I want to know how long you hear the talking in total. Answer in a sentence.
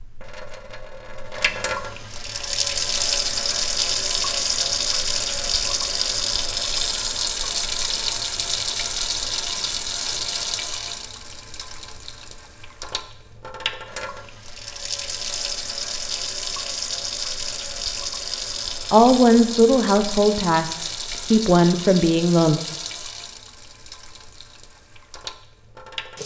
You can hear the talking for 4 seconds altogether.